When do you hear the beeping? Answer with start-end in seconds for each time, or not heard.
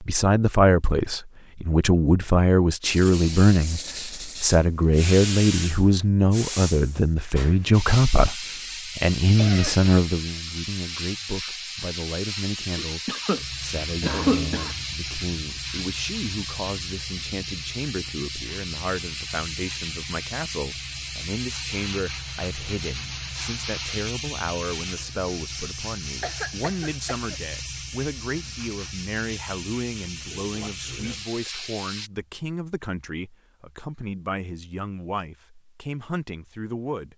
not heard.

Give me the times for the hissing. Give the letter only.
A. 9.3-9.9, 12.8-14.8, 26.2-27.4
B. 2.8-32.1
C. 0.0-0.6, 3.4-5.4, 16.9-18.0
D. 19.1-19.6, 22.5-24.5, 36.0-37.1
B.